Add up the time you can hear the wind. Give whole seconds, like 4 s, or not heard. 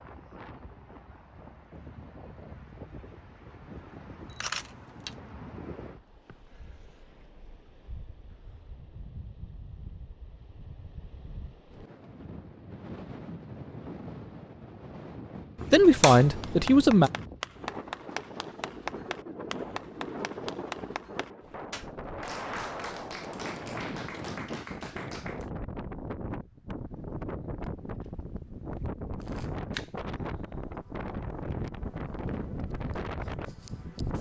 34 s.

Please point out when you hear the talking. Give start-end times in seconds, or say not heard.
15.7-17.1.